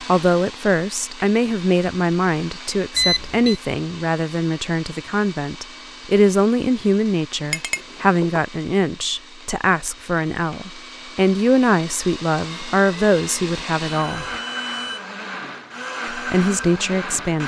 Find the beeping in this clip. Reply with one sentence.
The beeping can be heard from 3.0 to 3.6 s, from 7.8 to 8.4 s and from 13.8 to 15.0 s.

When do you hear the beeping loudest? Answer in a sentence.
The loudest moment of the beeping is at 3 seconds.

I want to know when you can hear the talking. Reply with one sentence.
The talking can be heard from 0.0 to 14.2 s and from 16.1 to 17.4 s.